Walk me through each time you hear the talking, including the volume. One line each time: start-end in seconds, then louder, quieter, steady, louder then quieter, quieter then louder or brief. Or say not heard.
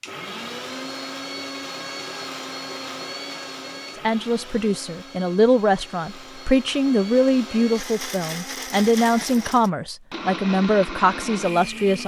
4.0-12.0 steady.